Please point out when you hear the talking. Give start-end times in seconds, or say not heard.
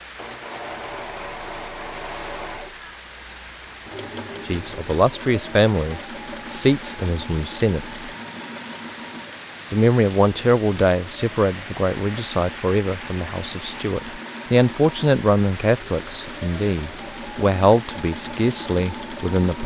4.5-8.0, 9.7-19.6.